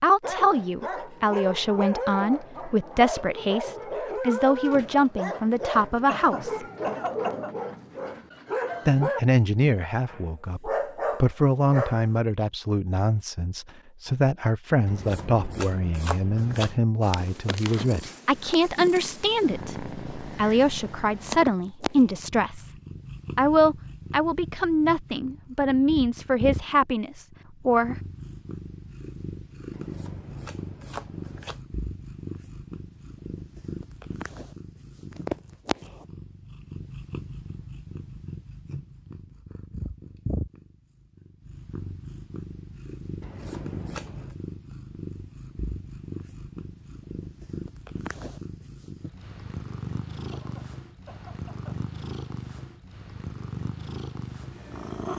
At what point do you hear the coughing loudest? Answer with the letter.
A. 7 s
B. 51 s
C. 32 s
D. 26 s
A.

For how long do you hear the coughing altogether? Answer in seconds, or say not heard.
3 s.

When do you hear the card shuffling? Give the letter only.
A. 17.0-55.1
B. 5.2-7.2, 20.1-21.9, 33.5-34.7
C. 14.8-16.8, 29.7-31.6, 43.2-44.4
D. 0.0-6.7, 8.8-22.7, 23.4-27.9
C.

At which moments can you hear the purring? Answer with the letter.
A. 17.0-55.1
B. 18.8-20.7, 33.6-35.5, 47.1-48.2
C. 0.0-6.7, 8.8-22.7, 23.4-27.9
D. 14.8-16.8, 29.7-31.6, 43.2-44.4
A.